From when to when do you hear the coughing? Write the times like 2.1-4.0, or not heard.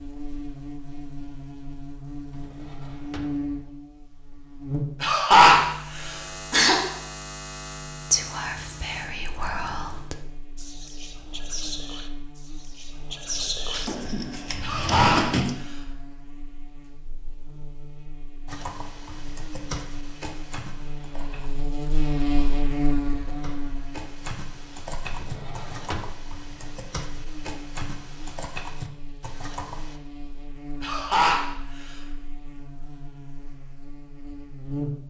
5.0-6.8, 14.6-15.8, 30.8-31.9.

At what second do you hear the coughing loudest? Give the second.
5 s.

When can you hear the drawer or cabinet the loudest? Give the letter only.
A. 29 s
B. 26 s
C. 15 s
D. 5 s
C.